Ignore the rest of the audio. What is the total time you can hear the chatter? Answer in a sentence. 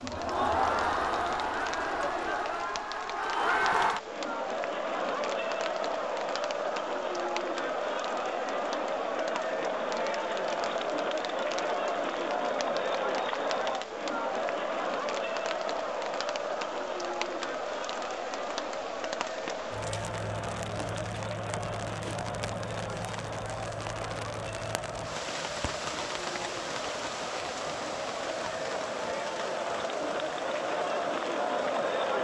You can hear the chatter for 32 seconds altogether.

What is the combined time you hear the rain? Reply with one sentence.
The rain can be heard for 32 seconds in total.